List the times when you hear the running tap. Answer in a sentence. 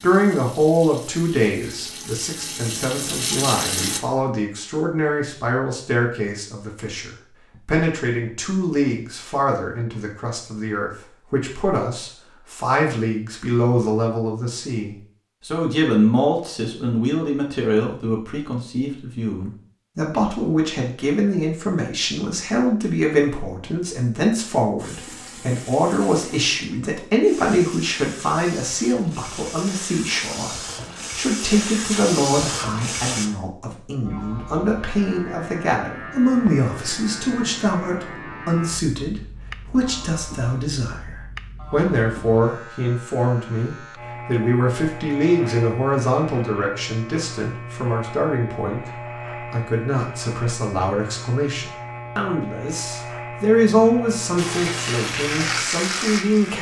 You can hear the running tap from 0.0 to 4.0 s, from 24.8 to 33.3 s and from 54.4 to 56.5 s.